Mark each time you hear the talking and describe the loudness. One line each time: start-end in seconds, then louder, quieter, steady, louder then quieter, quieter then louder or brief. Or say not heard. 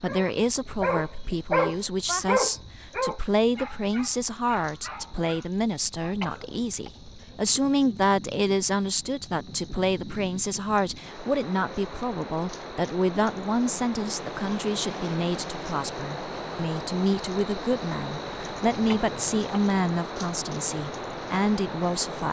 0.0-22.2 steady.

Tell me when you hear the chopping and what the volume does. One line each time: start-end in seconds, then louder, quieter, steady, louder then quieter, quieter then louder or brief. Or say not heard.
not heard.